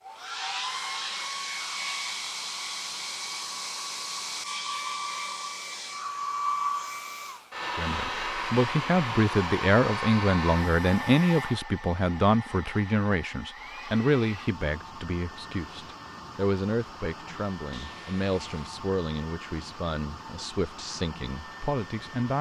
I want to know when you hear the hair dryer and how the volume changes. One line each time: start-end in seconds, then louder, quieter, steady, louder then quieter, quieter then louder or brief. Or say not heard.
0.0-22.3 quieter.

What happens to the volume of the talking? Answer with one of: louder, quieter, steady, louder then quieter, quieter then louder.
quieter.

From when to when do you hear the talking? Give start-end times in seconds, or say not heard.
7.8-22.3.